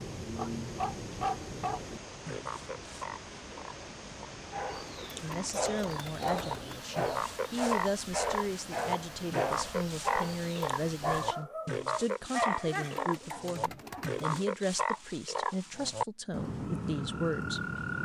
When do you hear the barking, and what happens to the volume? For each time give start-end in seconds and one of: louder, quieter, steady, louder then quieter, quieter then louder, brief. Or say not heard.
4.5-14.1 steady.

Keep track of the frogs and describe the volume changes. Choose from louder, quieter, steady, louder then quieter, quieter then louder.
steady.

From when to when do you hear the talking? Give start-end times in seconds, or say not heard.
5.2-17.6.